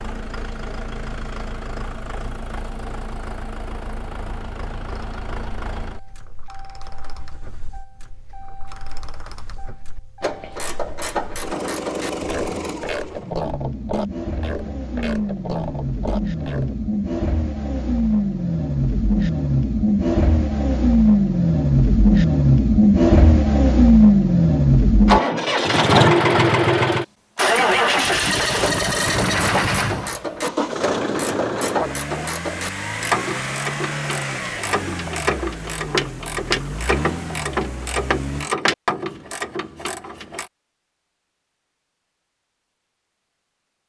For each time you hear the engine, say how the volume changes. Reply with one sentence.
You can hear the engine from 0.0 to 38.5 s, getting louder then quieter.